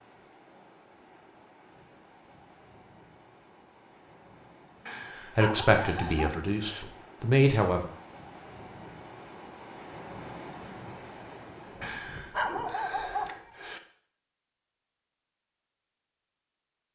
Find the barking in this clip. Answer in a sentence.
You can hear the barking from 4.8 to 6.8 s and from 11.8 to 13.8 s.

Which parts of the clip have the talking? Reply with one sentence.
You can hear the talking from 5.3 to 7.9 s.